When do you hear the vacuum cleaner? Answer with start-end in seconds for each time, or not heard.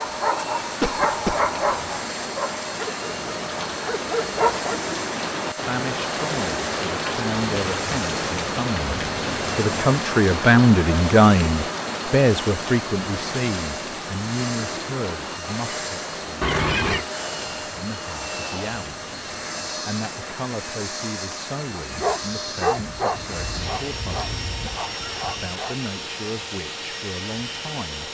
0.0-28.1.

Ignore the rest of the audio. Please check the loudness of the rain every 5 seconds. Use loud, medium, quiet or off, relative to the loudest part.
medium, loud, loud, medium, quiet, quiet.